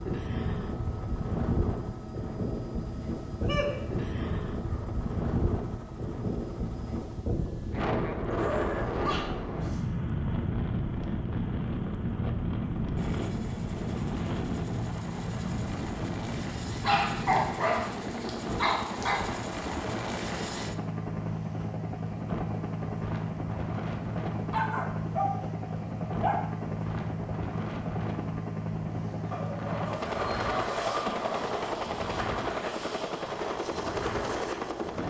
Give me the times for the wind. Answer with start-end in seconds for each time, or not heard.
0.0-35.0.